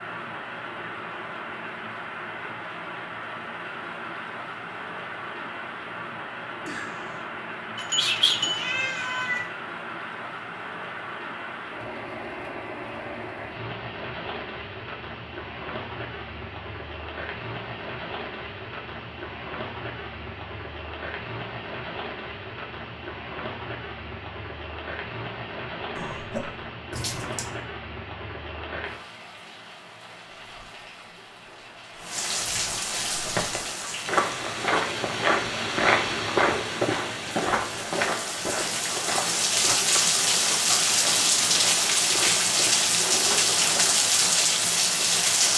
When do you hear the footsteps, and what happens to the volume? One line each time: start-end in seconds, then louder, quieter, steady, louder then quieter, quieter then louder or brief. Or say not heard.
33.1-44.1 quieter.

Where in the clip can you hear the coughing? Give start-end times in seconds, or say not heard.
6.7-7.2, 25.9-26.6.